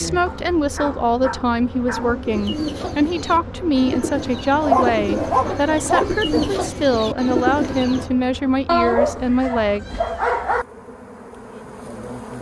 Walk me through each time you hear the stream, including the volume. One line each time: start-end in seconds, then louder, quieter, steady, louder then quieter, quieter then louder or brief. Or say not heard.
not heard.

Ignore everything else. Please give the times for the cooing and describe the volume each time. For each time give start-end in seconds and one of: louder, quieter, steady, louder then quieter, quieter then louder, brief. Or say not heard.
2.2-8.1 louder.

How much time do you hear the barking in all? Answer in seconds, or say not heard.
6 s.